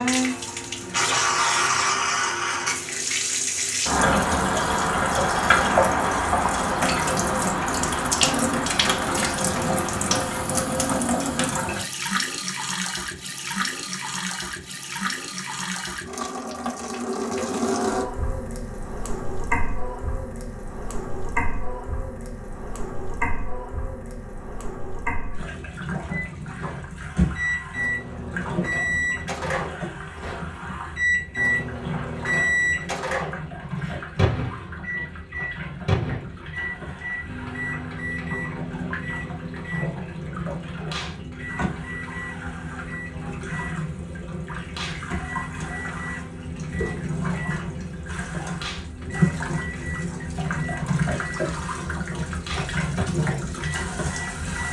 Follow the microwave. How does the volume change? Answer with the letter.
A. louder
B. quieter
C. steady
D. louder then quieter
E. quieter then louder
B.